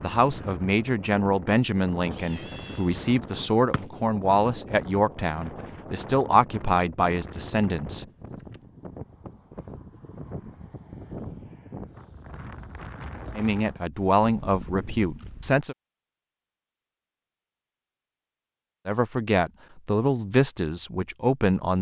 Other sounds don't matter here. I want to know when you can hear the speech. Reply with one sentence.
The speech can be heard from 0.0 to 8.1 s, from 13.3 to 15.8 s and from 18.9 to 21.7 s.